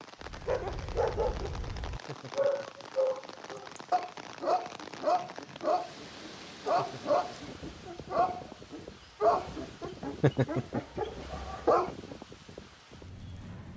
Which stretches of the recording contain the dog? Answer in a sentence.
The dog can be heard from 0.2 to 12.2 s.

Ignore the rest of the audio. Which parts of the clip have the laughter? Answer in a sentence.
The laughter can be heard from 2.0 to 2.9 s, from 6.8 to 7.5 s and from 10.2 to 11.0 s.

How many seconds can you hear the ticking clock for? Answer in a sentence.
The ticking clock can't be heard in this clip.